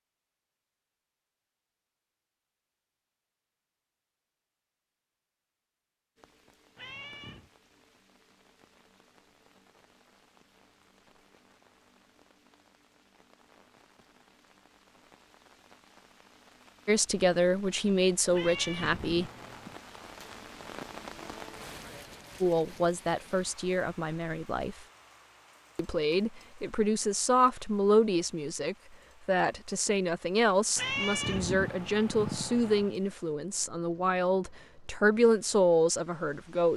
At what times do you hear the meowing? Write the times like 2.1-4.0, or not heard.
6.8-7.5, 18.3-19.8, 30.8-33.0.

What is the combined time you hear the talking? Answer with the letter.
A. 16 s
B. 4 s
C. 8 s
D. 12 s
A.